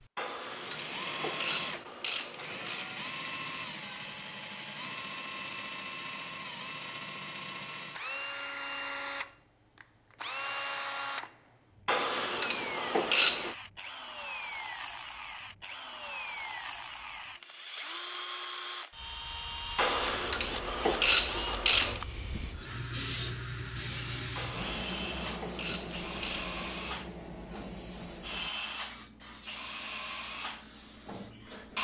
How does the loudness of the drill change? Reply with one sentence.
The loudness of the drill stays about the same.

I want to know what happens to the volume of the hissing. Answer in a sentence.
The loudness of the hissing goes down.